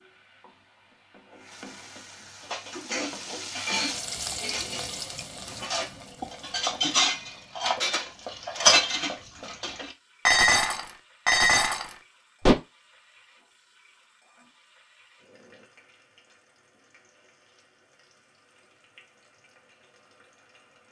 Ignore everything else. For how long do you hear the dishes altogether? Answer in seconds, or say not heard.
10 s.